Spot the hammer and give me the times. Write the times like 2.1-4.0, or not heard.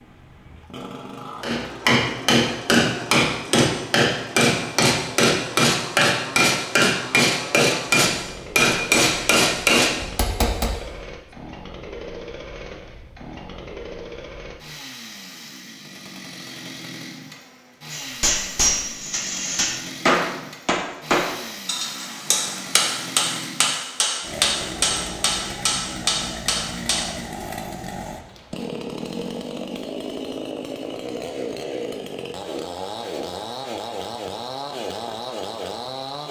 1.4-10.7, 17.9-27.1.